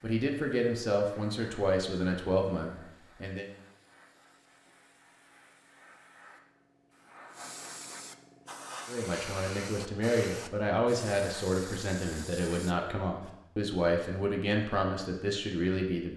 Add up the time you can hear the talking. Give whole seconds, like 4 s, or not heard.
11 s.